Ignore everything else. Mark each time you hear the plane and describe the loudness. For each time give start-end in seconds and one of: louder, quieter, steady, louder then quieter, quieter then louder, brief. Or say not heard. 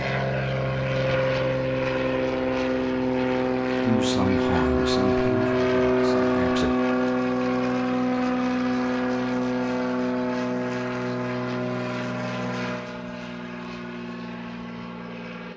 0.0-15.5 quieter.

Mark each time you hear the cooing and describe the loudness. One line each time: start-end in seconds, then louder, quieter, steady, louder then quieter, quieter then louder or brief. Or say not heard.
not heard.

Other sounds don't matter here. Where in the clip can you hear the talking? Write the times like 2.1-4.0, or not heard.
3.8-6.8.